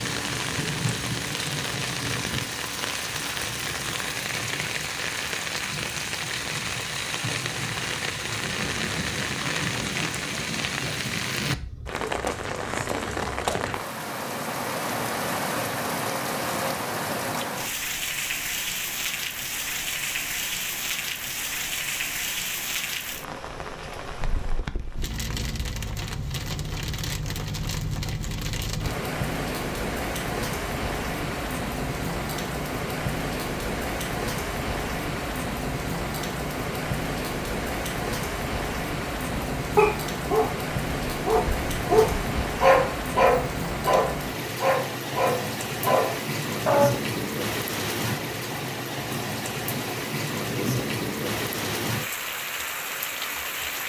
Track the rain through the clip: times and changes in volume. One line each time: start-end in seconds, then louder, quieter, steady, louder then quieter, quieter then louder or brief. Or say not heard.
0.0-53.8 steady.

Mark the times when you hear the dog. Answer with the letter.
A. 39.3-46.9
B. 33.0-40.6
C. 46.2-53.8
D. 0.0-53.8
A.